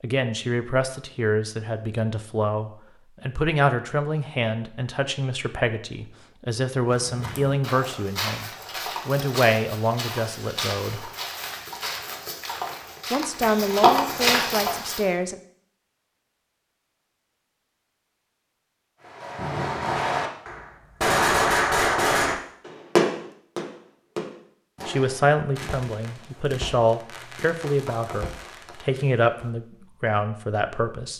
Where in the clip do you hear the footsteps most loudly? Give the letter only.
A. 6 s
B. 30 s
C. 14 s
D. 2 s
C.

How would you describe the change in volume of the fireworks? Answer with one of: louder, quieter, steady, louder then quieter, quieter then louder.
quieter.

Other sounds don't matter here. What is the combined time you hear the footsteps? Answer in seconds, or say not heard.
8 s.